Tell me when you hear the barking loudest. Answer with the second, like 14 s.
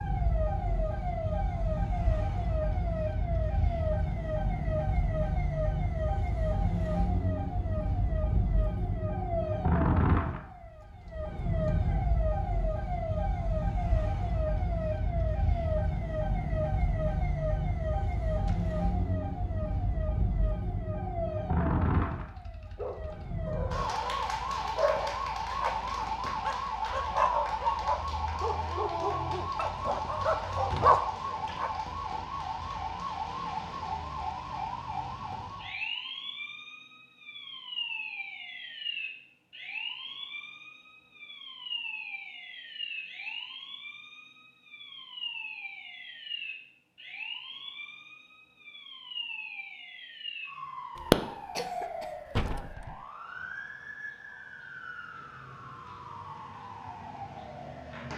31 s.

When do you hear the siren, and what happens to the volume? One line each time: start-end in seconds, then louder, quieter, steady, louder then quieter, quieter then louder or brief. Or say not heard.
0.0-58.1 quieter.